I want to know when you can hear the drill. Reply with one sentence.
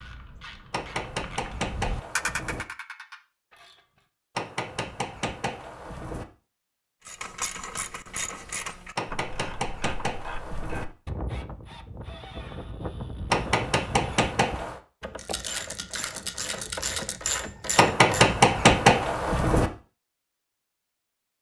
The drill can't be heard in this clip.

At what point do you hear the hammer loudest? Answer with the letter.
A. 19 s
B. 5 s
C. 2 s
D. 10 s
A.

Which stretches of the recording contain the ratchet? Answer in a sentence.
The ratchet can be heard from 0.0 to 4.0 s and from 7.0 to 18.4 s.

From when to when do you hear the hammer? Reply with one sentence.
You can hear the hammer from 0.7 to 2.6 s, from 4.3 to 6.2 s, from 8.9 to 10.8 s, from 13.3 to 14.8 s and from 17.8 to 19.7 s.